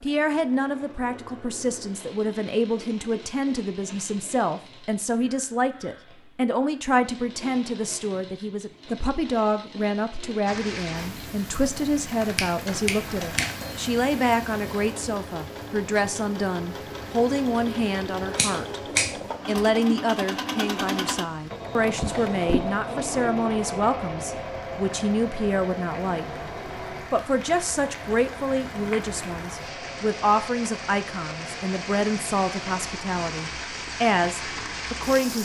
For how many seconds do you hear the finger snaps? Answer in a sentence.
The finger snaps can be heard for 2 seconds in total.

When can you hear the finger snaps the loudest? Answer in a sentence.
The volume of the finger snaps peaks at 19 seconds.